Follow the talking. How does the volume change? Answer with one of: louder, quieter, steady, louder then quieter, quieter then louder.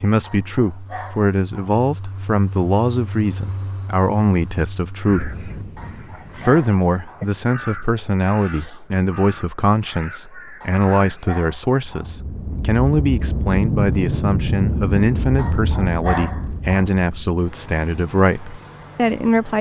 steady.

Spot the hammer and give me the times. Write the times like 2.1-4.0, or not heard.
not heard.